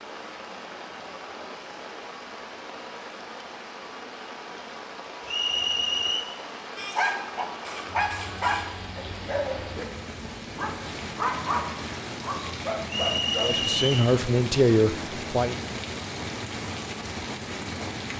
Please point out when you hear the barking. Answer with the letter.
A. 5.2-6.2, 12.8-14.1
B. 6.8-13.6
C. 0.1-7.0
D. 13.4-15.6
B.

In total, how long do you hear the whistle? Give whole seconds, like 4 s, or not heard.
2 s.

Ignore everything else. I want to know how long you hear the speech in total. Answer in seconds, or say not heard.
2 s.